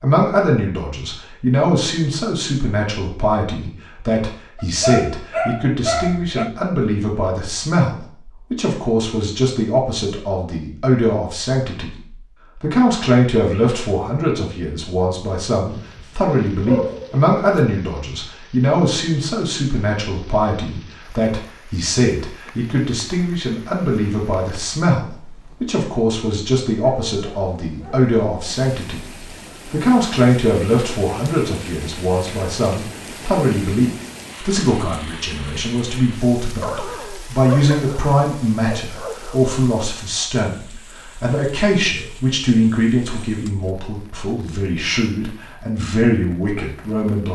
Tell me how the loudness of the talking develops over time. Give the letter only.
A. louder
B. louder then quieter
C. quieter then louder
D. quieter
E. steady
E.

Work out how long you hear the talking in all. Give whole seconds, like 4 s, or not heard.
46 s.